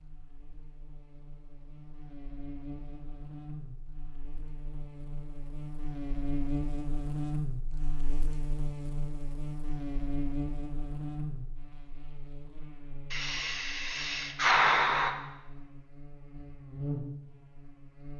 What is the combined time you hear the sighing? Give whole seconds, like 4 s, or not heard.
2 s.